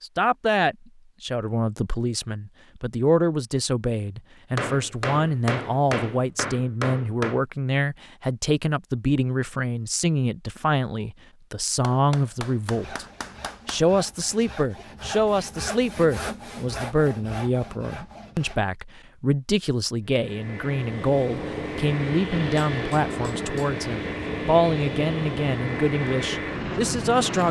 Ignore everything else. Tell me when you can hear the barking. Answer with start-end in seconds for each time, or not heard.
not heard.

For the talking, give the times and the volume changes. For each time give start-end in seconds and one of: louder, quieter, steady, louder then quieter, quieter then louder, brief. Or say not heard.
0.0-13.1 steady
13.7-27.4 steady.